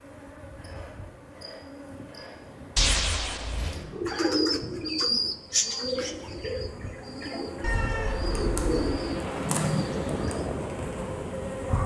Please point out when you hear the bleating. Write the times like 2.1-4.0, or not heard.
not heard.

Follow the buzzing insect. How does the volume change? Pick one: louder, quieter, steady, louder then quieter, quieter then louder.
louder.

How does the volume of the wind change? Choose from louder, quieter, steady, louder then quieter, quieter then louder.
louder.